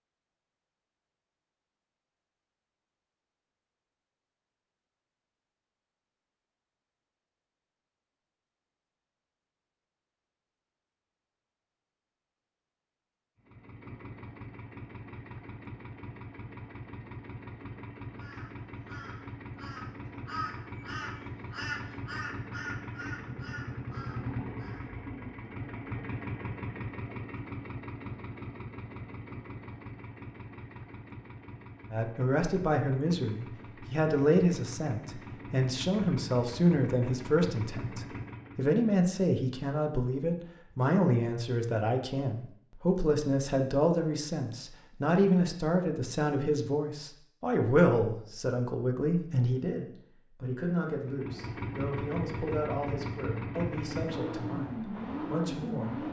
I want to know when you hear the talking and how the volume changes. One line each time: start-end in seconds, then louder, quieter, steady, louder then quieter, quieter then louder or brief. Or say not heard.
31.9-56.0 quieter.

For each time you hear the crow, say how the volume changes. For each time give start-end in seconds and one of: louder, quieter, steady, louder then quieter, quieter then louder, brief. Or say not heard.
18.1-24.9 louder then quieter.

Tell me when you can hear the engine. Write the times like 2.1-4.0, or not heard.
13.3-38.7, 51.0-56.0.